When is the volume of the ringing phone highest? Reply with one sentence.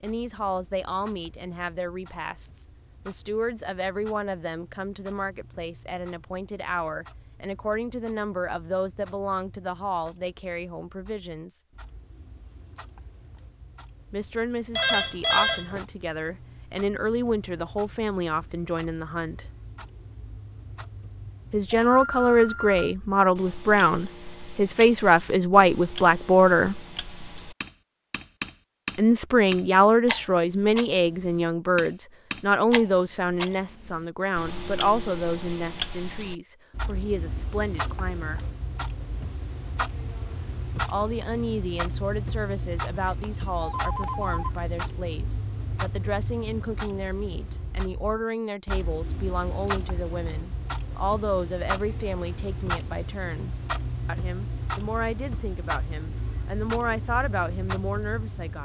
The loudest moment of the ringing phone is at 15 seconds.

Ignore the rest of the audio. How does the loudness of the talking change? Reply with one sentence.
The volume of the talking goes up, then down.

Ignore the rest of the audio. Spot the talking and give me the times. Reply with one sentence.
The talking can be heard from 0.0 to 11.6 s, from 14.1 to 19.4 s, from 21.5 to 26.8 s, from 28.9 to 38.4 s and from 40.9 to 58.6 s.